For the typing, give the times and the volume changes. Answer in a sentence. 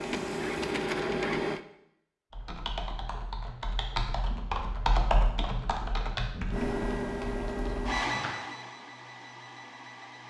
You can hear the typing from 2.3 to 8.3 s, getting louder then quieter.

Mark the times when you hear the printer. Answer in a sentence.
The printer can be heard from 0.0 to 1.6 s and from 6.5 to 10.2 s.